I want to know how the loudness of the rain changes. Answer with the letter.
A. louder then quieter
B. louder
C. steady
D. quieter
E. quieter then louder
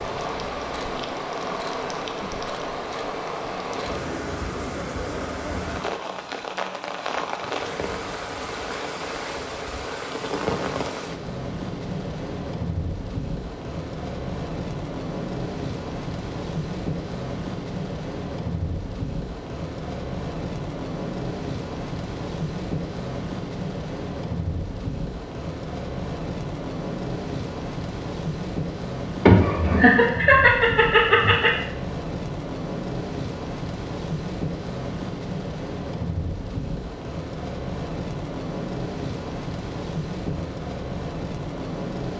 C.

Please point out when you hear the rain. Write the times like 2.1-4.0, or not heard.
0.0-42.1.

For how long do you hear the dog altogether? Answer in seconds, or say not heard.
not heard.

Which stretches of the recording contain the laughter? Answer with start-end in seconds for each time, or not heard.
29.2-31.5.